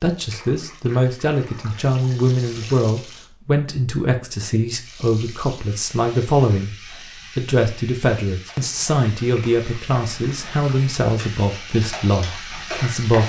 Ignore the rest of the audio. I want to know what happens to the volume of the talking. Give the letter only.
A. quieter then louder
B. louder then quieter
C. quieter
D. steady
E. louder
D.